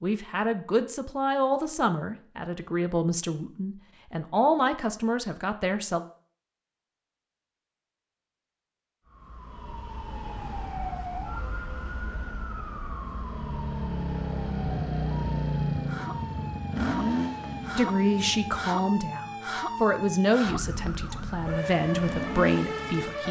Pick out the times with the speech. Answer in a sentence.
You can hear the speech from 0.0 to 6.0 s and from 17.8 to 23.2 s.